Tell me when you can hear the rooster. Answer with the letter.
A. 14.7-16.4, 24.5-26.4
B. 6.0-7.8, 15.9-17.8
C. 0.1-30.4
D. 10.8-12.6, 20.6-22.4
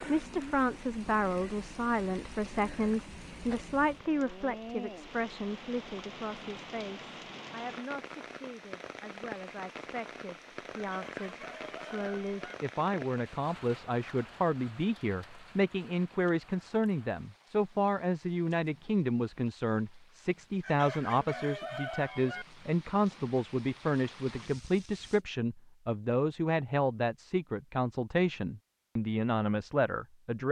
D.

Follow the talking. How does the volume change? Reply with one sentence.
The volume of the talking goes down, then up.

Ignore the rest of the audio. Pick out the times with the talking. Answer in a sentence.
You can hear the talking from 0.1 to 30.4 s.